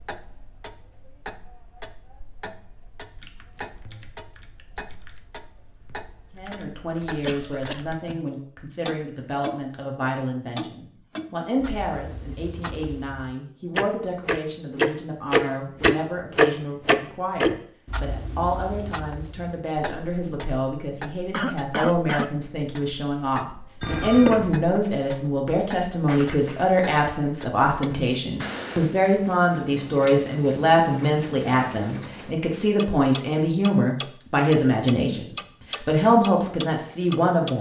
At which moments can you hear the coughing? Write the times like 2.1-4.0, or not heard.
7.2-8.3, 21.3-22.4, 26.1-26.7.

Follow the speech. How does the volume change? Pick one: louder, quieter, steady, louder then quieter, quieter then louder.
louder.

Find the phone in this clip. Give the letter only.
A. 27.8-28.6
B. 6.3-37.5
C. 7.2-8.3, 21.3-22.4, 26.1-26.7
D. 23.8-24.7
D.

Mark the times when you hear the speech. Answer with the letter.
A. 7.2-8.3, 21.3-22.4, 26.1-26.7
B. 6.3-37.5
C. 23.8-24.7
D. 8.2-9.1
B.